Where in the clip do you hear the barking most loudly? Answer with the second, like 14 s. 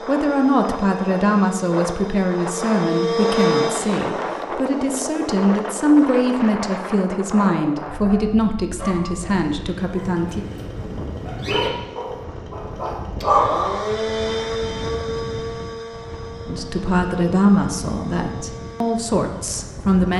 13 s.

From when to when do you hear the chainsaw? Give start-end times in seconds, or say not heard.
0.0-6.5, 9.2-20.0.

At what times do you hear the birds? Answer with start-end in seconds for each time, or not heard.
not heard.